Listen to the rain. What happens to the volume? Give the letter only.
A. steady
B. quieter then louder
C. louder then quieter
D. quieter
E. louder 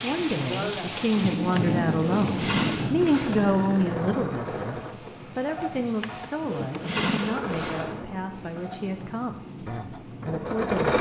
D.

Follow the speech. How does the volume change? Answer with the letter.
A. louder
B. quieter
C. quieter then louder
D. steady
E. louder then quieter
B.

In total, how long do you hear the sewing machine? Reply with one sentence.
The sewing machine can be heard for 8 seconds in total.